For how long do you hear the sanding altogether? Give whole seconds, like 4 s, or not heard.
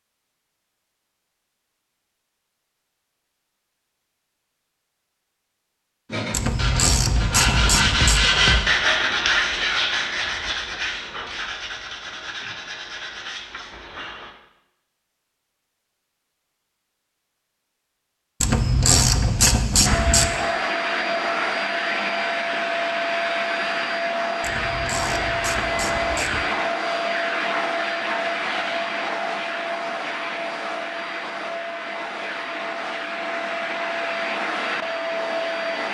8 s.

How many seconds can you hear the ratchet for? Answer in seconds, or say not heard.
6 s.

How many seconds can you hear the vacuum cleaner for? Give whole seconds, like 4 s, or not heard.
16 s.